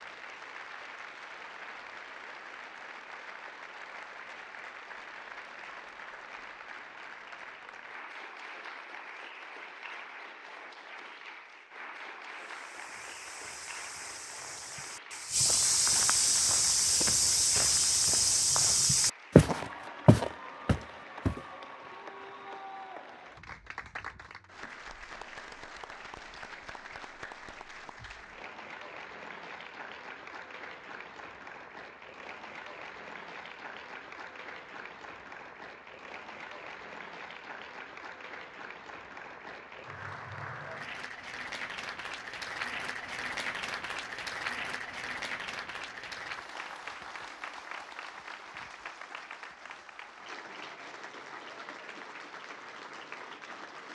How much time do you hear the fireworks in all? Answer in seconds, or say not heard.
not heard.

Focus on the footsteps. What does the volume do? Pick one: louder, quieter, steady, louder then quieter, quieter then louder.
louder.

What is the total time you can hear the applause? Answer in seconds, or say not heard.
54 s.